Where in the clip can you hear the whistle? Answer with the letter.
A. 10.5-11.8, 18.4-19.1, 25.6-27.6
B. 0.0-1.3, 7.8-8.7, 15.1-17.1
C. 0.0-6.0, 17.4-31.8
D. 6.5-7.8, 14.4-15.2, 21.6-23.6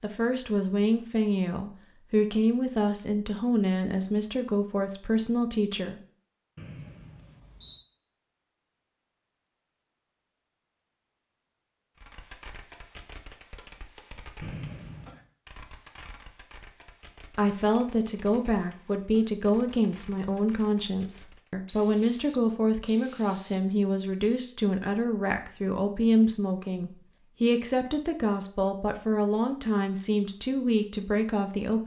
D.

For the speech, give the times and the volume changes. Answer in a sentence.
You can hear the speech from 0.0 to 6.0 s, at a steady volume; and from 17.4 to 31.8 s, at a steady volume.